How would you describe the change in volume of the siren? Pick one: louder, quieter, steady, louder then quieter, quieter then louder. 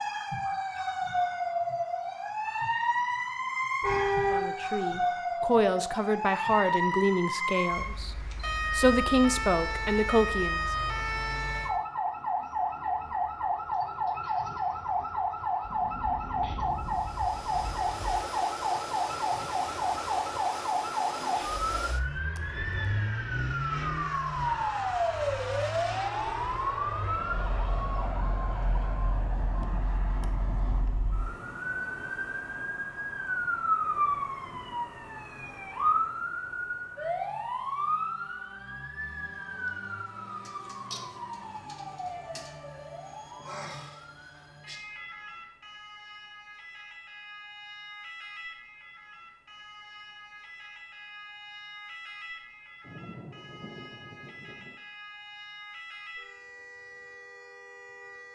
quieter.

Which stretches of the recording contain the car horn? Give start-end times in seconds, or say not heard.
3.8-4.5.